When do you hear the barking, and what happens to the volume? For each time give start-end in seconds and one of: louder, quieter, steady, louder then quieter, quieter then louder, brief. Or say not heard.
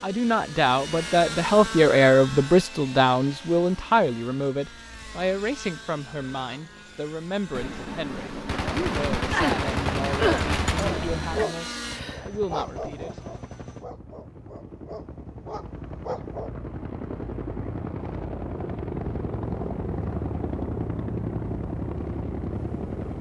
10.8-16.5 quieter then louder.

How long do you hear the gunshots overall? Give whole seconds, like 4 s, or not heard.
4 s.